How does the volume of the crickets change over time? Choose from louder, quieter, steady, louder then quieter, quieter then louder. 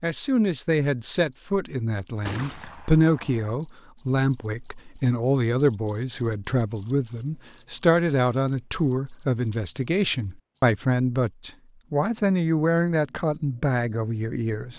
louder then quieter.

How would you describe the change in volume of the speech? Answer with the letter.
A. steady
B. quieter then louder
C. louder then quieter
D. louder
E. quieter
A.